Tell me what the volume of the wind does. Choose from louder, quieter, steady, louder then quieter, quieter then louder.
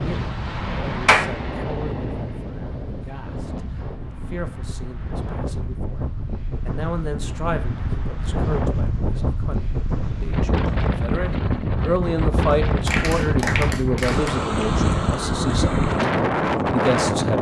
louder.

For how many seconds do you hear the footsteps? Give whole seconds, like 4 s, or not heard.
not heard.